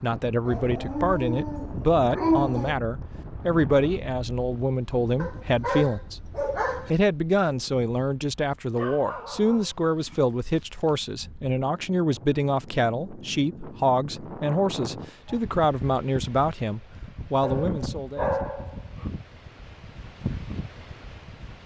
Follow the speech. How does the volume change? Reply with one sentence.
The loudness of the speech stays about the same.